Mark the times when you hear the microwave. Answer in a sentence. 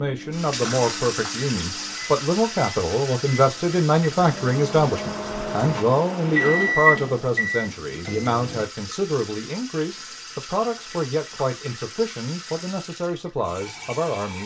You can hear the microwave from 0.0 to 8.7 s.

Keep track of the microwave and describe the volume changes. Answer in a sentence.
The volume of the microwave goes up.